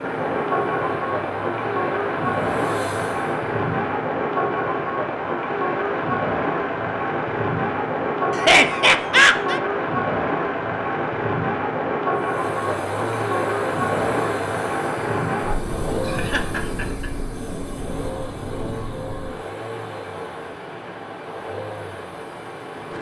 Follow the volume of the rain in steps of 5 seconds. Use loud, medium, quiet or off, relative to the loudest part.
loud, loud, loud, medium, quiet.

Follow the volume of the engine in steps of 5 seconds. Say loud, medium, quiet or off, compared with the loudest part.
loud, off, loud, loud, medium.